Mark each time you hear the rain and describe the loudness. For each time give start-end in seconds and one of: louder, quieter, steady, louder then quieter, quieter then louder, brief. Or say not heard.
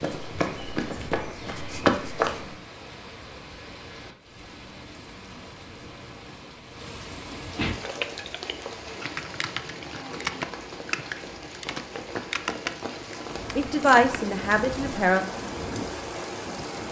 0.0-16.8 louder.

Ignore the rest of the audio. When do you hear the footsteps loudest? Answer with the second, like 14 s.
2 s.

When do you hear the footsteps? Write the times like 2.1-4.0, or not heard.
0.0-2.5.